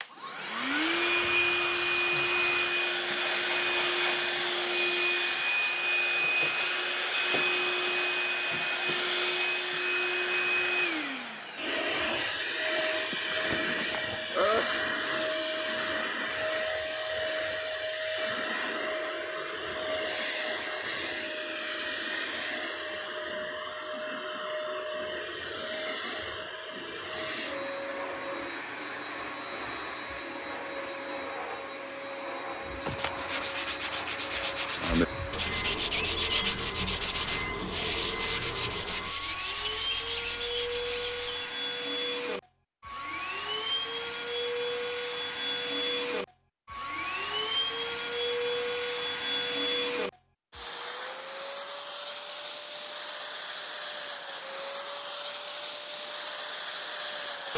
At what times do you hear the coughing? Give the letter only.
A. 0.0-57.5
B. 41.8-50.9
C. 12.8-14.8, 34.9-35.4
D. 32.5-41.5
C.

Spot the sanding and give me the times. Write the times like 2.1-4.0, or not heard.
32.5-41.5.